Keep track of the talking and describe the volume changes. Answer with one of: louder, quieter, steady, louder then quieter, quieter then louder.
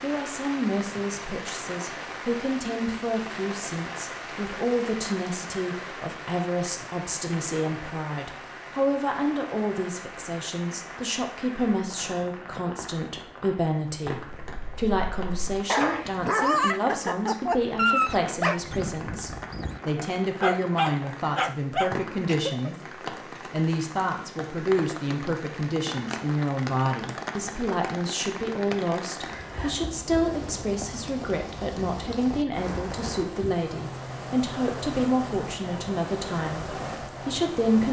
steady.